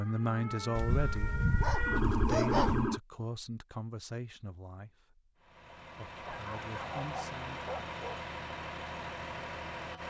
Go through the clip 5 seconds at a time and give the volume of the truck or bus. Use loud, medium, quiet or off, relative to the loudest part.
off, loud.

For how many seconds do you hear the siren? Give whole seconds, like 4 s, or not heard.
3 s.